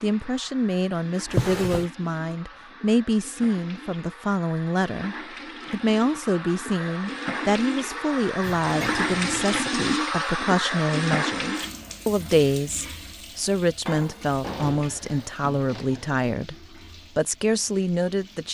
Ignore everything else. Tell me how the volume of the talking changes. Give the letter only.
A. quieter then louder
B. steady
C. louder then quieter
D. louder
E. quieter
B.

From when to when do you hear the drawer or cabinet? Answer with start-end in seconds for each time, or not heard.
1.2-1.9, 8.4-9.7, 14.4-16.1.